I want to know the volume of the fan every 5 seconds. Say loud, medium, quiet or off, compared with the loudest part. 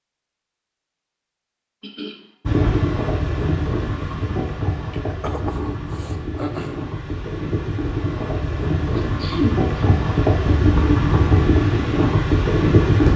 medium, medium, loud.